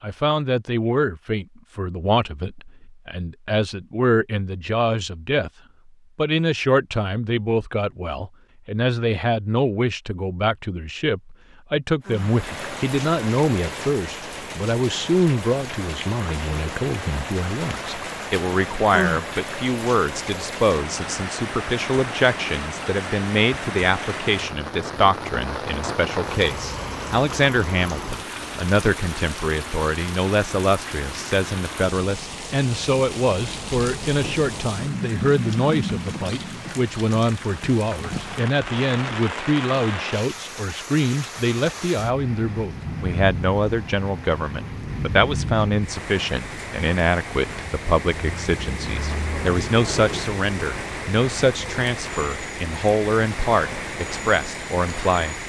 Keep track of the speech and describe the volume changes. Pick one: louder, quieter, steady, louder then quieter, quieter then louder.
steady.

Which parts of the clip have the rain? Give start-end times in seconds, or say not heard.
12.1-55.4.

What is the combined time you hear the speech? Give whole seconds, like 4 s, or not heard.
55 s.